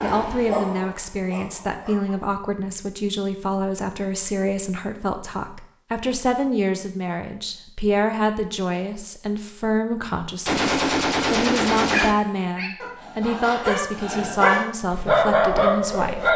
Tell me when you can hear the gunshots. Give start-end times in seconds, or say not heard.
10.4-12.2.